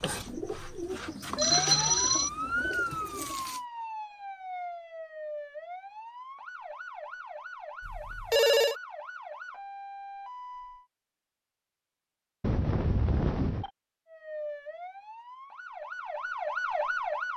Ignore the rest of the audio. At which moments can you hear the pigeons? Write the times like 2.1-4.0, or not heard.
0.0-3.6.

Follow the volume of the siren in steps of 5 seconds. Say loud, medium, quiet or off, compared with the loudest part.
loud, medium, medium, loud.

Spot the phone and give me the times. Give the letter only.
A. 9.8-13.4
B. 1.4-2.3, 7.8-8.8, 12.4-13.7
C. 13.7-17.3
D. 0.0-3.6
B.